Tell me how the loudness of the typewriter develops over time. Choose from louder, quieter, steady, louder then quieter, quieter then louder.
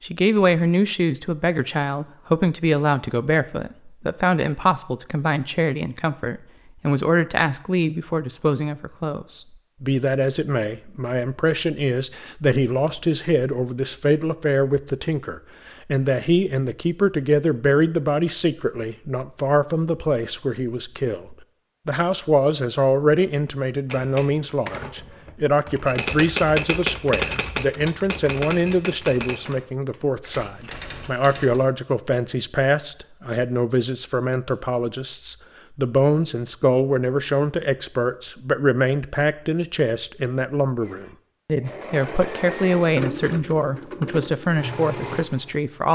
louder then quieter.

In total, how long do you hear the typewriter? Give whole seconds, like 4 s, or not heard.
8 s.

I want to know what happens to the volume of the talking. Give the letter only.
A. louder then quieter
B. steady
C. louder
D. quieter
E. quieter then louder
B.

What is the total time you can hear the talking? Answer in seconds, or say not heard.
46 s.